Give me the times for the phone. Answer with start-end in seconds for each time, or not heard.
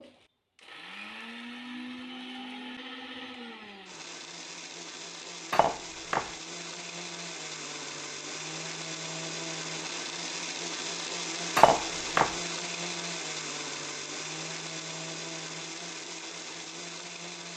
not heard.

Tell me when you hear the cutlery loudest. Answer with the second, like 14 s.
12 s.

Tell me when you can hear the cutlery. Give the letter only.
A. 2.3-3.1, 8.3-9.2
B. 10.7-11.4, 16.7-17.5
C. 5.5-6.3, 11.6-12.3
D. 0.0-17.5
C.